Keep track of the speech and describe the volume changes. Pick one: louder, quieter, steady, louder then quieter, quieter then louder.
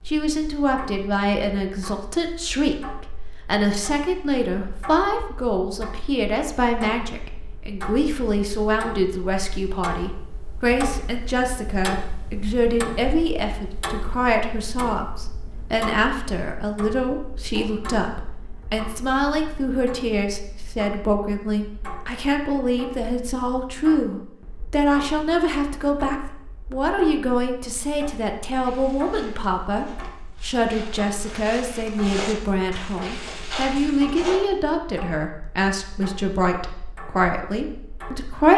steady.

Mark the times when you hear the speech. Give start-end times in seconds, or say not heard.
0.1-38.5.